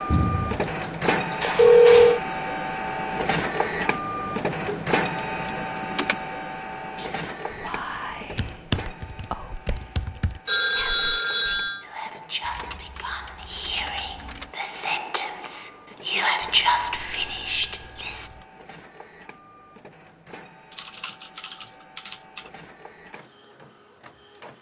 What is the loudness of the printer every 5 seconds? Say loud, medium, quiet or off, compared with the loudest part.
loud, medium, quiet, quiet, quiet.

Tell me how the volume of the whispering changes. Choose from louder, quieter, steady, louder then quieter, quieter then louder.
louder.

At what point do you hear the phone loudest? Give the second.
2 s.